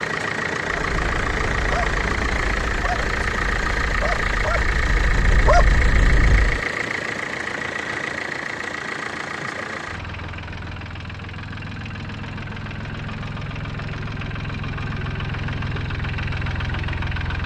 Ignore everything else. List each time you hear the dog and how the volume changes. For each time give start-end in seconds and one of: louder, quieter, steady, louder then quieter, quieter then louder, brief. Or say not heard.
0.8-6.7 louder.